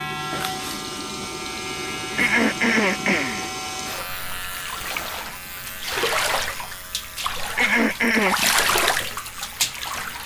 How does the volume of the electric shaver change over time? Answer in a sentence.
The loudness of the electric shaver goes down.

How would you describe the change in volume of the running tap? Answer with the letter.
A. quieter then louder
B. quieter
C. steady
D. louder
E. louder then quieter
D.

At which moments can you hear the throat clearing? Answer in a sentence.
You can hear the throat clearing from 2.1 to 3.5 s and from 7.5 to 8.5 s.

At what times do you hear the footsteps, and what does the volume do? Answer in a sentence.
The footsteps can't be heard in this clip.